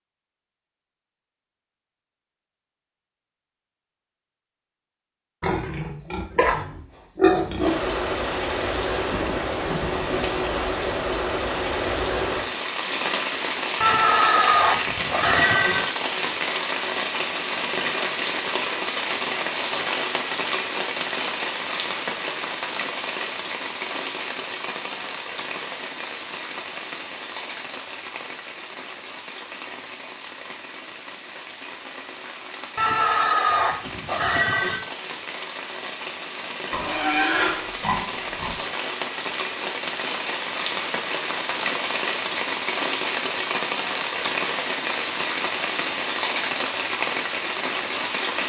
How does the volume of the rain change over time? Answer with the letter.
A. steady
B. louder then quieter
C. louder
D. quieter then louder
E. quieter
D.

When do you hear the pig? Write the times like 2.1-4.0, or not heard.
5.4-7.8, 13.8-15.8, 32.8-34.8, 36.7-38.6.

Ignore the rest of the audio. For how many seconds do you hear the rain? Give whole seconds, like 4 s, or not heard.
41 s.